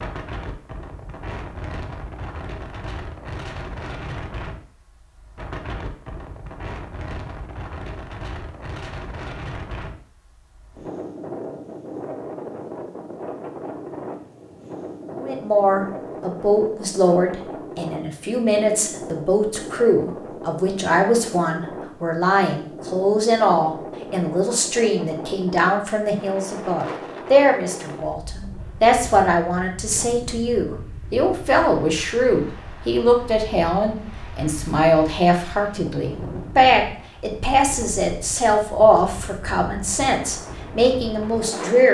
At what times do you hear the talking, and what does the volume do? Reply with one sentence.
You can hear the talking from 15.2 to 41.8 s, at a steady volume.